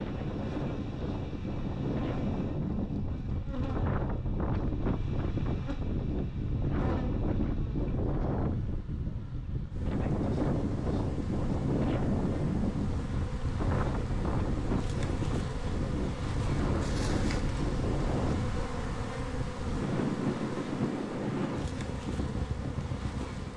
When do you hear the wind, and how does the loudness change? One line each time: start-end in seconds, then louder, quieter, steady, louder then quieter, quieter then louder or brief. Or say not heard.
0.0-23.5 steady.